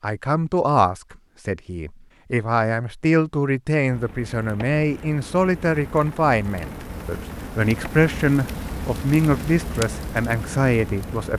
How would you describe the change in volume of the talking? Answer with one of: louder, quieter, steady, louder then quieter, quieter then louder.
steady.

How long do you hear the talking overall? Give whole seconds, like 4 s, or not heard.
11 s.